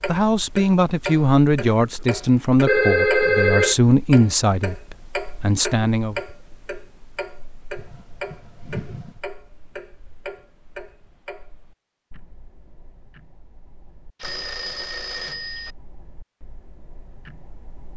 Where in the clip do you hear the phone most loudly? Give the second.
3 s.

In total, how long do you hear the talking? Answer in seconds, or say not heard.
6 s.